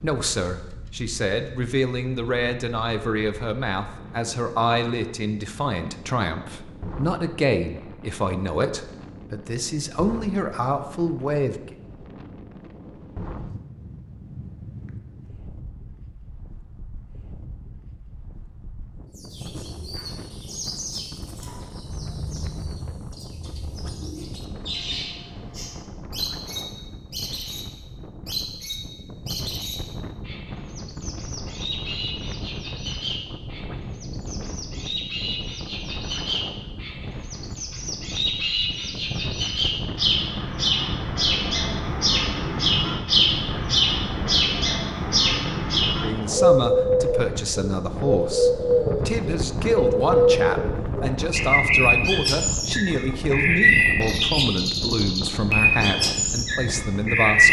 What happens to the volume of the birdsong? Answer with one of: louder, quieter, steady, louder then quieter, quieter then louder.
louder.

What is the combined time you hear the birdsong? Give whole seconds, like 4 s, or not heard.
38 s.